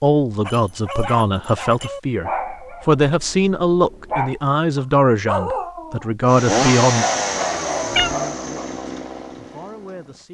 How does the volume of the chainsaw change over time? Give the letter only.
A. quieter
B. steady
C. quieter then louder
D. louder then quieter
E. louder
A.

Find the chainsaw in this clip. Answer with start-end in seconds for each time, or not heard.
6.2-10.2.